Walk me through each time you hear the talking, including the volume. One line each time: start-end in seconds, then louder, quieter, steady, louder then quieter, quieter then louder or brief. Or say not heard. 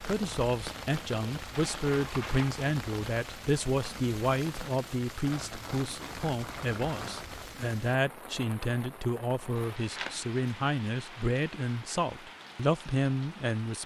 0.0-13.8 steady.